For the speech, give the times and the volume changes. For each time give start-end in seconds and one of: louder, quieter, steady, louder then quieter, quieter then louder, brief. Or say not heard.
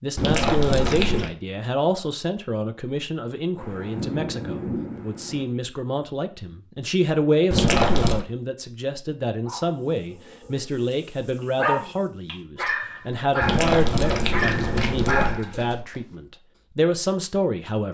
0.0-17.8 steady.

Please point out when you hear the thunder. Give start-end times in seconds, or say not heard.
3.5-5.5.